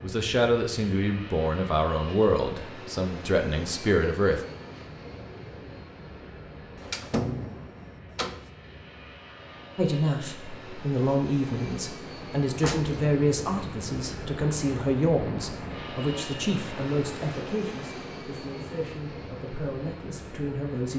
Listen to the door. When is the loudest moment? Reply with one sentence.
The loudest moment of the door is at 7 seconds.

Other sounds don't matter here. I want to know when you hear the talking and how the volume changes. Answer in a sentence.
The talking can be heard from 0.0 to 4.4 s, getting quieter then louder; and from 9.8 to 20.9 s, getting quieter.